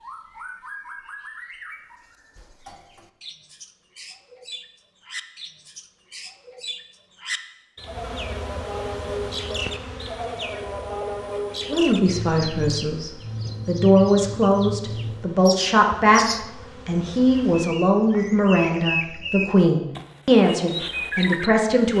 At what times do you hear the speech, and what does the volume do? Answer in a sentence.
The speech can be heard from 11.7 to 21.9 s, at a steady volume.